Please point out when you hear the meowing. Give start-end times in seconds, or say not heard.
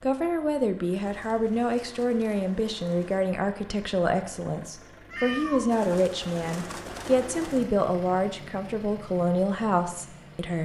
5.1-5.7.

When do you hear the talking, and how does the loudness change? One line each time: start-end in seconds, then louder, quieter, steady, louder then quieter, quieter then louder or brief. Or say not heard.
0.0-10.6 steady.